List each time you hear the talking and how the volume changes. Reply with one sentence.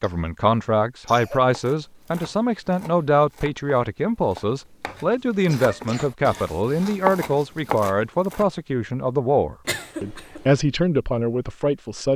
The talking can be heard from 0.0 to 12.1 s, at a steady volume.